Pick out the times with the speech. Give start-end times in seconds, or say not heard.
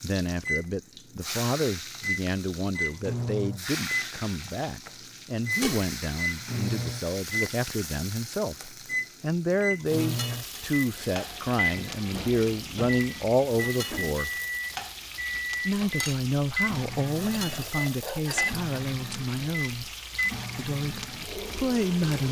0.0-14.3, 15.7-19.9, 20.6-22.2.